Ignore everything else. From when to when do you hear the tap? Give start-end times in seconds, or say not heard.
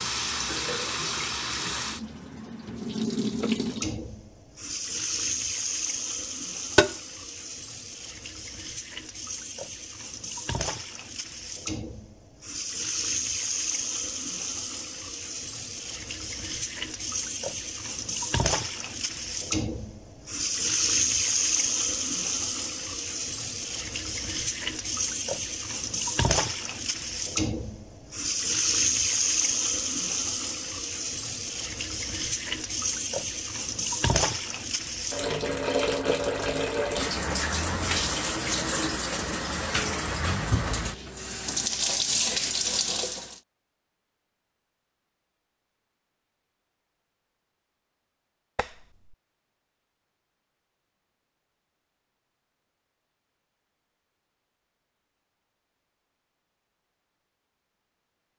0.0-43.4.